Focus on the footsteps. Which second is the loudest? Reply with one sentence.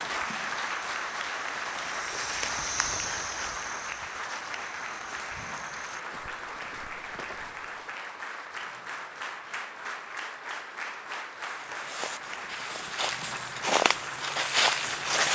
The volume of the footsteps peaks at 15 seconds.